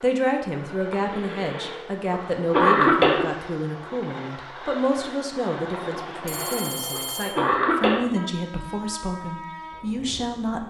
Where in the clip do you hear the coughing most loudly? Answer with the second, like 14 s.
3 s.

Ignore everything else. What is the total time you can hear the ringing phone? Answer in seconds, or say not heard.
2 s.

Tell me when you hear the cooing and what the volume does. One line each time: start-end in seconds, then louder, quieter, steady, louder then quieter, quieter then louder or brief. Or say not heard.
not heard.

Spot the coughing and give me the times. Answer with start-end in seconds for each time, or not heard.
0.9-3.2, 5.9-8.0.